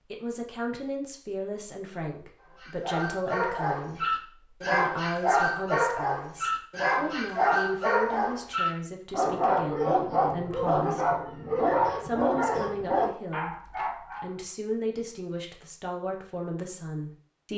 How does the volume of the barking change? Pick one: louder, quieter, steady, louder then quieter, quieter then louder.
steady.